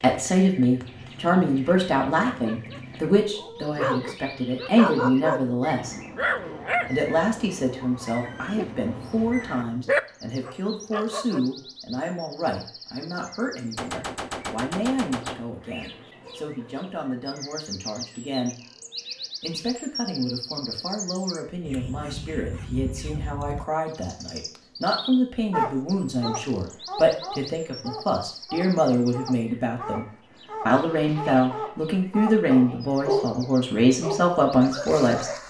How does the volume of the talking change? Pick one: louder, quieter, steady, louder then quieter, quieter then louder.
quieter then louder.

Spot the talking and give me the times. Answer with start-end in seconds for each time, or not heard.
0.0-6.0, 6.8-18.6, 19.4-30.1, 30.6-35.3.